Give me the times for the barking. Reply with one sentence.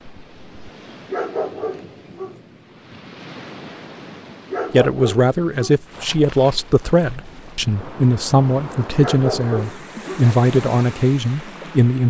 You can hear the barking from 1.1 to 2.4 s, from 4.5 to 5.8 s and from 8.9 to 10.1 s.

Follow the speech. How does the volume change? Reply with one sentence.
The volume of the speech stays about the same.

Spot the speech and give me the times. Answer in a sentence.
You can hear the speech from 4.7 to 12.0 s.